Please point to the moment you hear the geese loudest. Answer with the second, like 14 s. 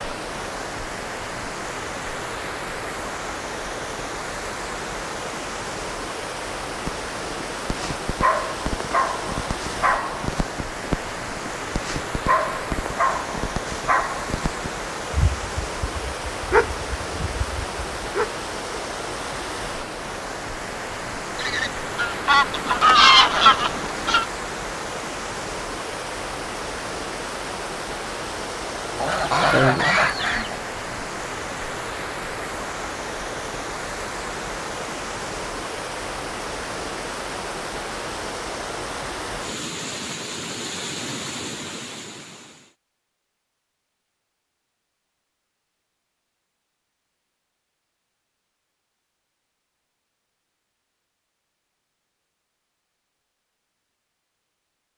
23 s.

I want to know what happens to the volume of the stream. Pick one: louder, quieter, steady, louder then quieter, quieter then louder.
steady.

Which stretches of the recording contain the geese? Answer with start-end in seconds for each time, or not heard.
21.4-24.2, 28.9-30.6.